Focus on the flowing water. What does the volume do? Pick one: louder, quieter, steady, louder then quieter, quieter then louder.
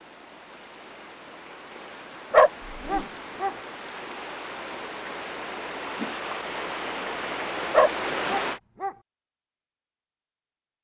louder.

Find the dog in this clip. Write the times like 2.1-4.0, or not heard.
2.3-3.5, 7.7-8.9.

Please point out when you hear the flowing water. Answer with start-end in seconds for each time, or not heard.
0.0-8.6.